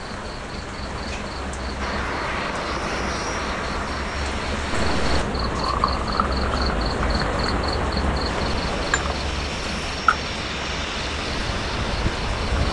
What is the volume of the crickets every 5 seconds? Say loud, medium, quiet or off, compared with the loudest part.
medium, loud, loud.